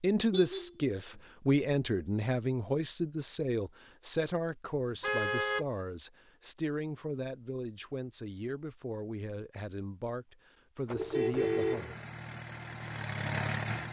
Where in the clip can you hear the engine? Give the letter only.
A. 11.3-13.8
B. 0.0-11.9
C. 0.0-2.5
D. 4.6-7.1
A.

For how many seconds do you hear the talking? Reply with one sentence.
You can hear the talking for 12 seconds altogether.